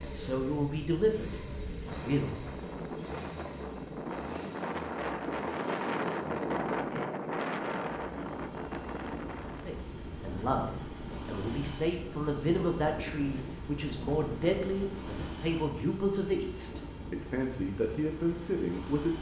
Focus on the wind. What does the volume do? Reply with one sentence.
The volume of the wind goes up, then down.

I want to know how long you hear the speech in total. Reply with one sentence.
You can hear the speech for 12 seconds altogether.